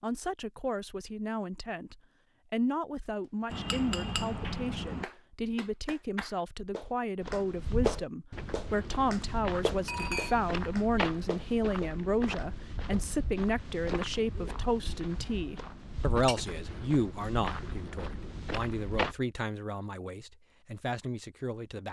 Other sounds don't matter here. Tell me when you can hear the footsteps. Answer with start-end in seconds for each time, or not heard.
7.2-19.1.